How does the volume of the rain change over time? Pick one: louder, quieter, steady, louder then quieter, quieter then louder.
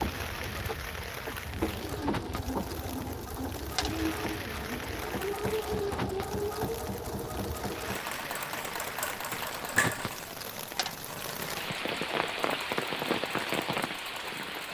louder.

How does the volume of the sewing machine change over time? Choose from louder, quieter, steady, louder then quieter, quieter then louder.
quieter.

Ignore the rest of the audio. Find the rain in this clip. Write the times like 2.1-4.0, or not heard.
0.0-14.6.